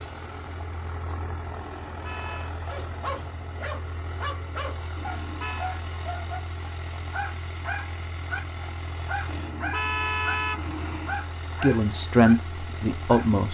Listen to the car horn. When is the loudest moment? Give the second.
10 s.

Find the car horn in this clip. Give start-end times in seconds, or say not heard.
1.9-2.5, 5.0-5.7, 9.2-11.2.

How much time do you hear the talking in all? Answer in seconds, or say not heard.
2 s.